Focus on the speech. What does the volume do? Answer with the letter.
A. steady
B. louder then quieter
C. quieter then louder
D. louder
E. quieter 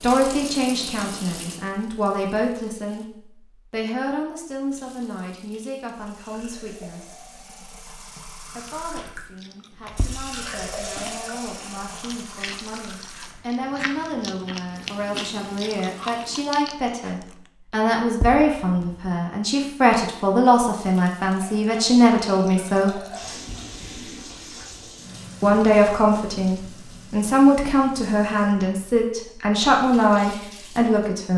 C.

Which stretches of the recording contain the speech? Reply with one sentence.
You can hear the speech from 0.0 to 7.2 s, from 8.6 to 23.0 s and from 25.4 to 31.3 s.